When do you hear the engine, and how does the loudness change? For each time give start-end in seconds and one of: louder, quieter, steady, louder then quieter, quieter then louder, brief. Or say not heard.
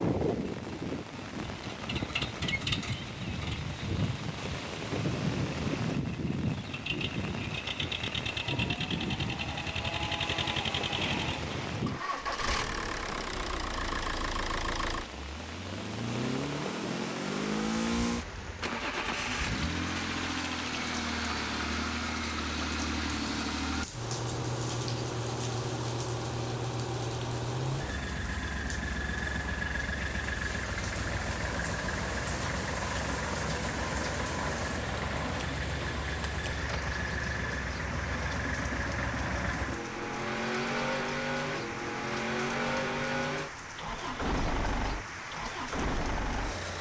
0.0-46.7 steady.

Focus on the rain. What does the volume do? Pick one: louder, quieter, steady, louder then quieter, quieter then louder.
steady.